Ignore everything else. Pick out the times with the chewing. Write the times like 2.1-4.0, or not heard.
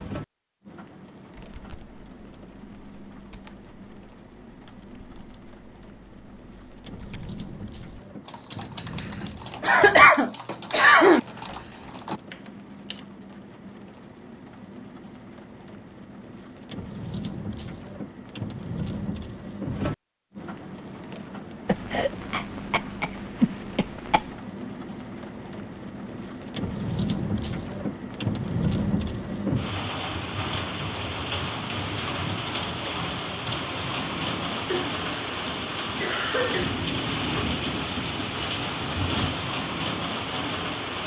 not heard.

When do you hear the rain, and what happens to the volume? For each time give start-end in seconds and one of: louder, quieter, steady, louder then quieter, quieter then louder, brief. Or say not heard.
0.0-41.0 louder.